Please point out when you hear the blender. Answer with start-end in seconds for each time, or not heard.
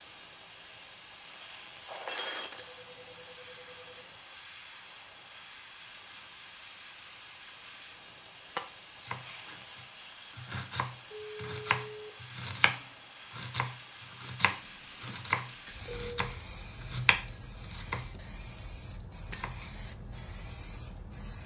not heard.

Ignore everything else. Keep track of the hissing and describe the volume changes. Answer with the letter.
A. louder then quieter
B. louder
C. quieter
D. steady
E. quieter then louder
D.